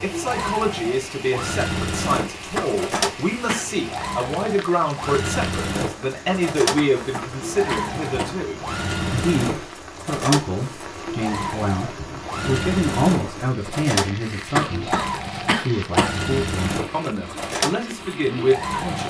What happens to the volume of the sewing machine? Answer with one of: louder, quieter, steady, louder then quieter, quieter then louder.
steady.